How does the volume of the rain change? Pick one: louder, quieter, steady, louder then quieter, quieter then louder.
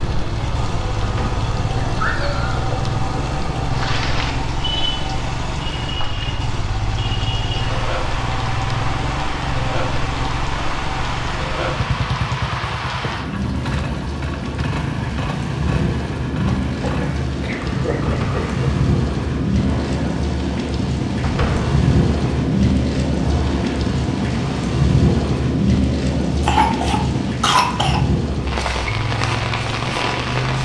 louder.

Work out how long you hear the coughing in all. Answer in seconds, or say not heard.
4 s.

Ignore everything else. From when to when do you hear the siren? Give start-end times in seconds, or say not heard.
not heard.